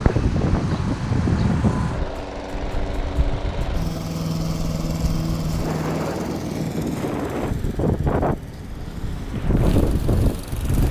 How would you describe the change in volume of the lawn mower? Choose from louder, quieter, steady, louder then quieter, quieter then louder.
louder then quieter.